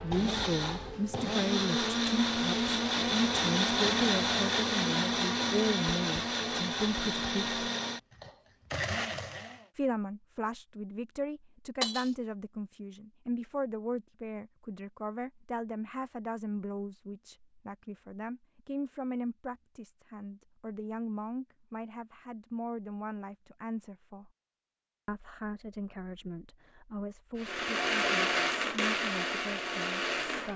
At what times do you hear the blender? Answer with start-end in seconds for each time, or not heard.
0.0-9.7, 27.4-30.5.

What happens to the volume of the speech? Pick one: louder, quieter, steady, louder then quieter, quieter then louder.
quieter.